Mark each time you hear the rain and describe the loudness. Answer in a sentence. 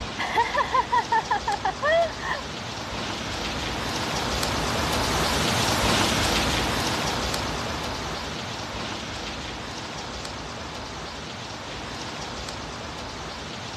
The rain can be heard from 0.0 to 13.7 s, getting louder then quieter.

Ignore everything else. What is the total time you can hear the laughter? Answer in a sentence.
The laughter can be heard for 2 seconds in total.